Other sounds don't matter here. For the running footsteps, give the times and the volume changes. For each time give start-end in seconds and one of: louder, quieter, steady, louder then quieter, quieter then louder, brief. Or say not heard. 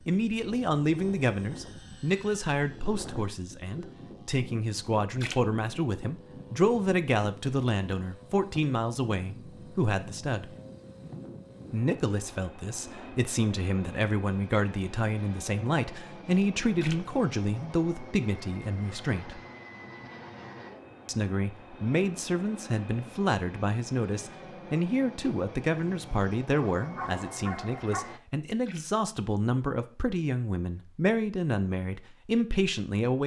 not heard.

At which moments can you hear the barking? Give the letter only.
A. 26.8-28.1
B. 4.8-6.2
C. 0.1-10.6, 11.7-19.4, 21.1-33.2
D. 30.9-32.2
A.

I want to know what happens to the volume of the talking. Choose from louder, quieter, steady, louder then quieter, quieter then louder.
steady.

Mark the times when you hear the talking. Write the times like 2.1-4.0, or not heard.
0.1-10.6, 11.7-19.4, 21.1-33.2.